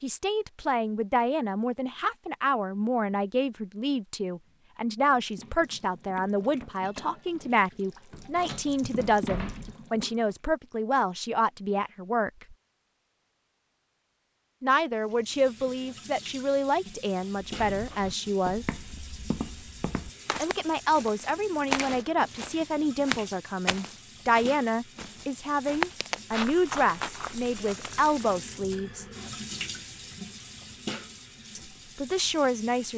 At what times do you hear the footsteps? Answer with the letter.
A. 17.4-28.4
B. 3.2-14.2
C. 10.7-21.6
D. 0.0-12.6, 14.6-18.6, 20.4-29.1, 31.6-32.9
A.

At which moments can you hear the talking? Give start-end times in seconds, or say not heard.
0.0-12.6, 14.6-18.6, 20.4-29.1, 31.6-32.9.